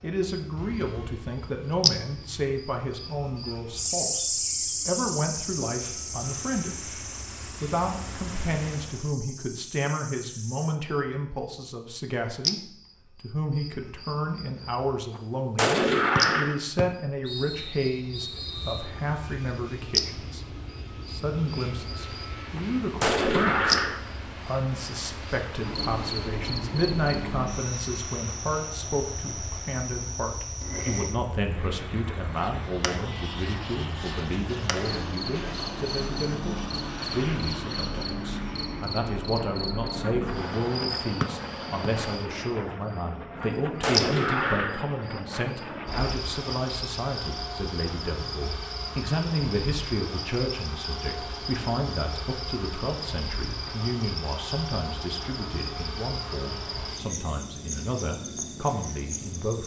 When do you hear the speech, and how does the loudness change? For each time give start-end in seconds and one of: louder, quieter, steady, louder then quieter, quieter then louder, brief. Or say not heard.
0.0-59.6 steady.